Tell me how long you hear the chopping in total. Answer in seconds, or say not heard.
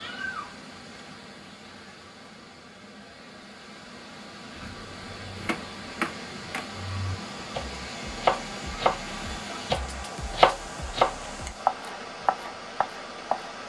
9 s.